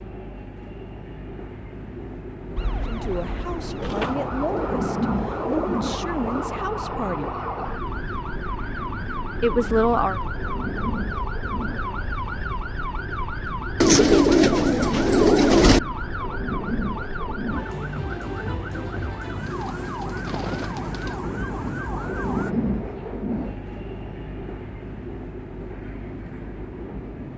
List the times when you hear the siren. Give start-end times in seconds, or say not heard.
2.5-22.6.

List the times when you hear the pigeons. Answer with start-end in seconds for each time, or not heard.
3.8-6.5, 13.8-15.8, 19.4-21.2.